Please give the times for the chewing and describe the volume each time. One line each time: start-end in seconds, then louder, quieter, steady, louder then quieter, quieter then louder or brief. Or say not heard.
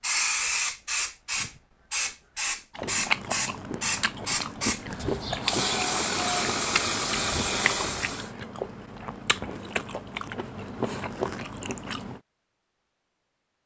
2.8-12.2 steady.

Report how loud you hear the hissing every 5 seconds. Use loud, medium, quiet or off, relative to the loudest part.
loud, loud, off.